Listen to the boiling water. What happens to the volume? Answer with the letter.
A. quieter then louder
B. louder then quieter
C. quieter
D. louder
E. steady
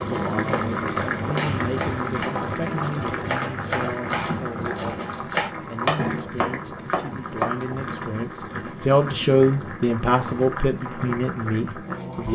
C.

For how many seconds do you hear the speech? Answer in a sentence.
You can hear the speech for 12 seconds altogether.